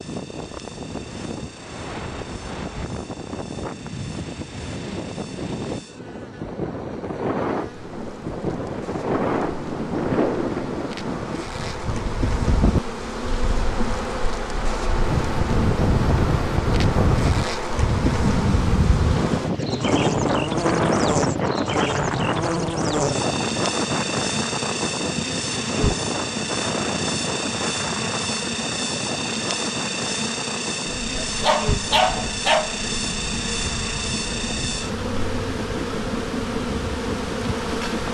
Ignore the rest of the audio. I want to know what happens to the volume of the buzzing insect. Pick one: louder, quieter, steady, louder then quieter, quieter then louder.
louder.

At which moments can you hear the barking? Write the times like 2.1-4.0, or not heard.
31.2-32.8.